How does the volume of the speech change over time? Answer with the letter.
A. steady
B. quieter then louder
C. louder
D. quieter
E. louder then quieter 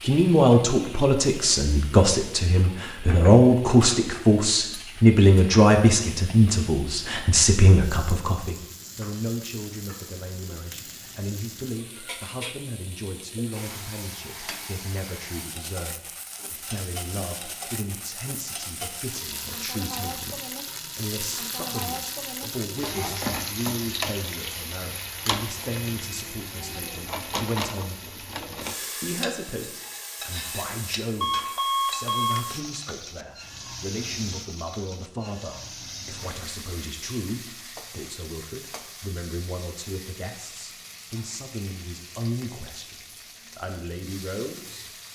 D.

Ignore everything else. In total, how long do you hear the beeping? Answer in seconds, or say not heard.
2 s.